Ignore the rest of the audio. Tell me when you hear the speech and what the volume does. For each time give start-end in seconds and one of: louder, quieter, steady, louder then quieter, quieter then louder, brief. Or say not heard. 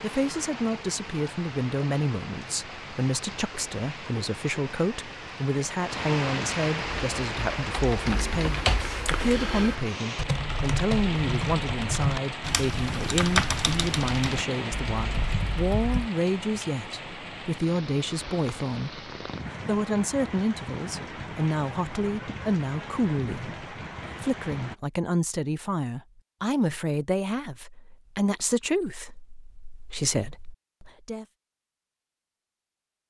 0.0-31.2 steady.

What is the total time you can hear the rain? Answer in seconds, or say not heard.
25 s.